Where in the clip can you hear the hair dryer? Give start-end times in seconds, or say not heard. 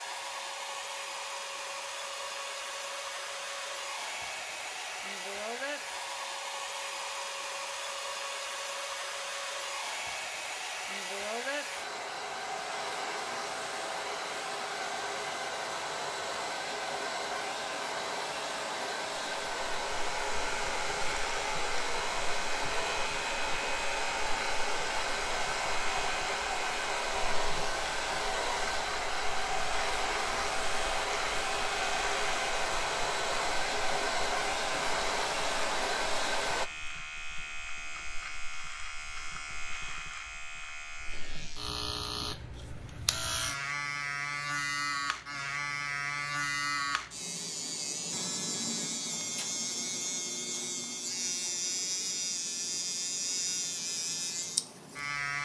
0.0-36.7.